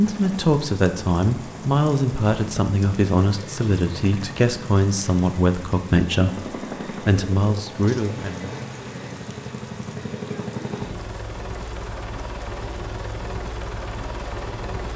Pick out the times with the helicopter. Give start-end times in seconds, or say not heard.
0.0-14.9.